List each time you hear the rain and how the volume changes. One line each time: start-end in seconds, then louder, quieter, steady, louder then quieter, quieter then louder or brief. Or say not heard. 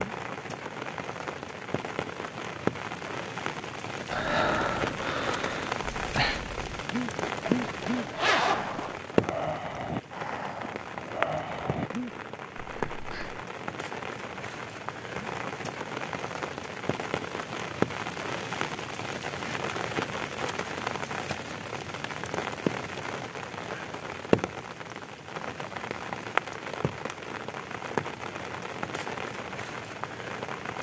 0.0-30.7 steady.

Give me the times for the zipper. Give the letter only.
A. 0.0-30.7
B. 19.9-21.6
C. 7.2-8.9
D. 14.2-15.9
C.